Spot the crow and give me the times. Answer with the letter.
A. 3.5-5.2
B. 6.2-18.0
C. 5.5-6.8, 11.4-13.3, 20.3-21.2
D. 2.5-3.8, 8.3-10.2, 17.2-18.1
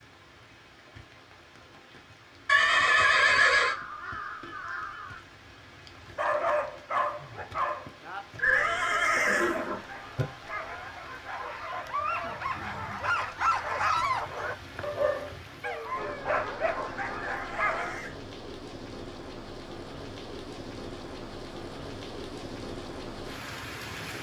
A.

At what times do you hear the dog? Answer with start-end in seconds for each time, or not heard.
6.2-18.0.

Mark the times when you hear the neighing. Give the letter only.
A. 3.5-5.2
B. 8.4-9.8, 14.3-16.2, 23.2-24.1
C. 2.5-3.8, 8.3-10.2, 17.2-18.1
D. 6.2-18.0
C.